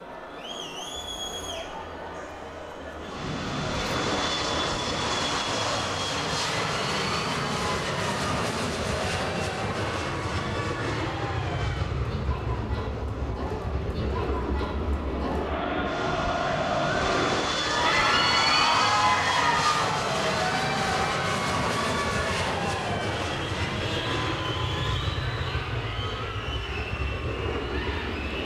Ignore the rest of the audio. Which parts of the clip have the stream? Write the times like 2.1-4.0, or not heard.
not heard.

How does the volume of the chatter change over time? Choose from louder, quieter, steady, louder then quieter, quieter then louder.
louder then quieter.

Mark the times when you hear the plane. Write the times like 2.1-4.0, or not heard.
3.0-28.3.